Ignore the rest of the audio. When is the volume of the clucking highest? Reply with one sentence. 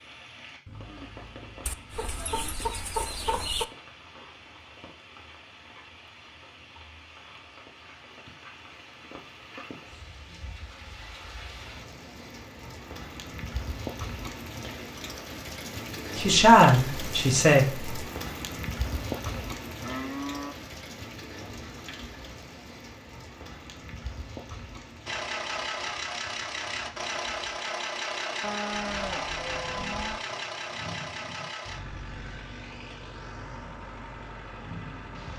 The volume of the clucking peaks at 3 seconds.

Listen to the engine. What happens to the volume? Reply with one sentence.
The loudness of the engine goes down.